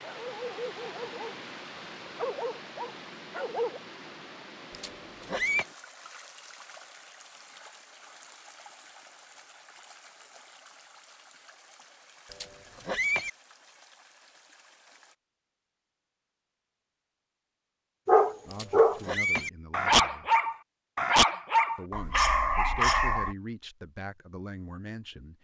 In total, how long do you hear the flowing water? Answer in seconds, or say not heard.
15 s.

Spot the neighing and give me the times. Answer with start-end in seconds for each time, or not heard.
4.7-5.7, 12.3-13.3, 18.5-19.5.